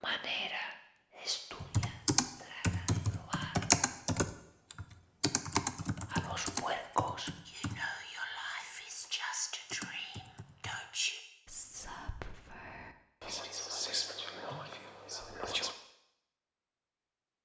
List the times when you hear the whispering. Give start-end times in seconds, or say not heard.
0.0-3.6, 6.0-15.8.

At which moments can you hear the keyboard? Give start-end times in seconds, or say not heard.
1.6-10.8.